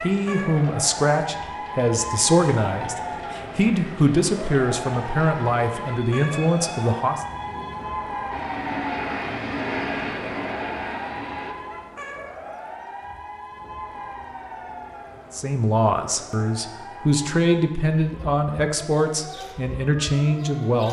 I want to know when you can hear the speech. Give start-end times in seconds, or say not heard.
0.0-7.2, 15.3-20.8.